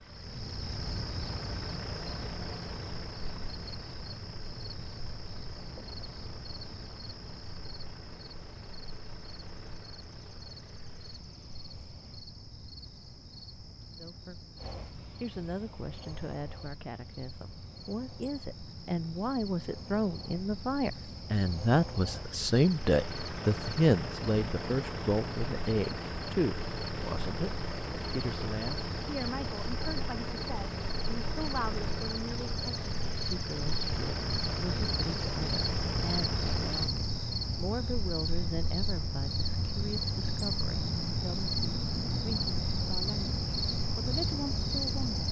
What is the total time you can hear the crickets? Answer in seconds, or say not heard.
45 s.